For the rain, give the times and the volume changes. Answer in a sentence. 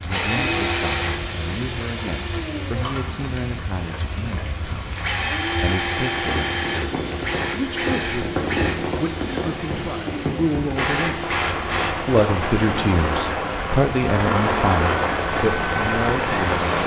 You can hear the rain from 0.0 to 16.8 s, getting louder.